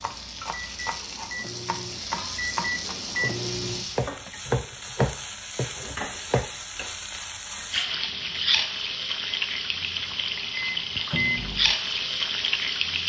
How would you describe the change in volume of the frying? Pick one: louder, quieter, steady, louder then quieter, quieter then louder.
louder.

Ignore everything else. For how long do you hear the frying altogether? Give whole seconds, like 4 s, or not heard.
13 s.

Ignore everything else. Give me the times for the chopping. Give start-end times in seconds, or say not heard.
0.0-6.5.